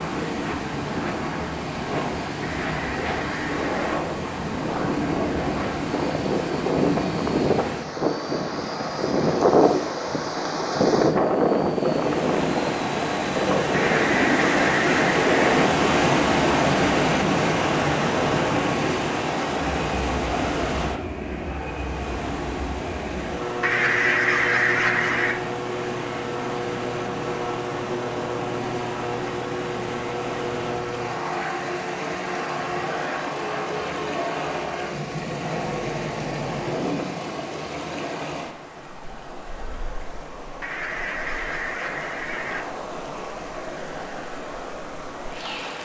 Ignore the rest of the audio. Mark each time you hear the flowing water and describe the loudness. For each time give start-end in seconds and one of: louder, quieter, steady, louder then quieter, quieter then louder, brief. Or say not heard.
0.0-45.7 louder then quieter.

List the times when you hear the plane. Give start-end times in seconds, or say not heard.
0.0-37.5.